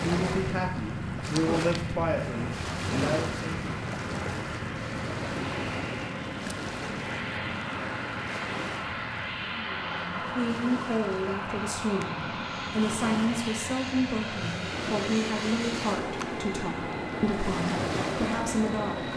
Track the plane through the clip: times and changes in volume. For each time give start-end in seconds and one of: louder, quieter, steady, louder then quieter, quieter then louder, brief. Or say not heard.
0.0-19.1 steady.